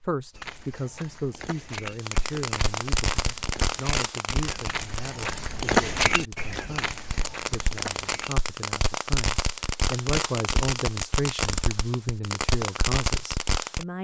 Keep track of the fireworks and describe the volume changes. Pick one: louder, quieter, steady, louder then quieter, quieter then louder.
quieter then louder.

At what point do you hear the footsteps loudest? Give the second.
6 s.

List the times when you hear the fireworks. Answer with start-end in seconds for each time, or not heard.
1.9-13.8.